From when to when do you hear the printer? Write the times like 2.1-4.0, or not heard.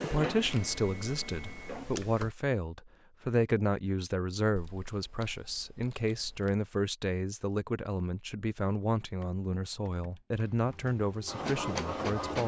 0.0-2.0, 10.4-12.4.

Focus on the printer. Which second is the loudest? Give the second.
12 s.